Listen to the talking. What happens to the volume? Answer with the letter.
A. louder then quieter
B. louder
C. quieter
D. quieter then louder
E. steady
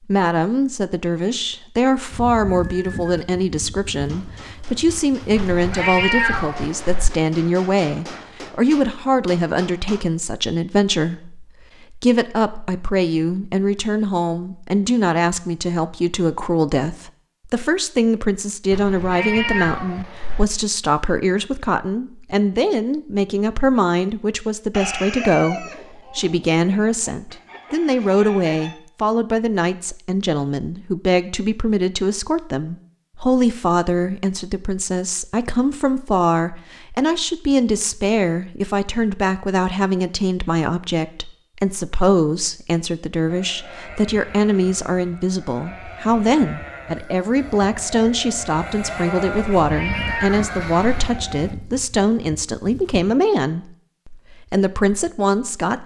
E.